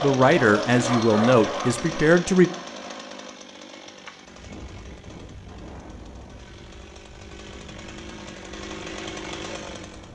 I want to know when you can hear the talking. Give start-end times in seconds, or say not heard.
0.0-2.5.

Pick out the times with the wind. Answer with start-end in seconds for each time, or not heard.
4.2-10.1.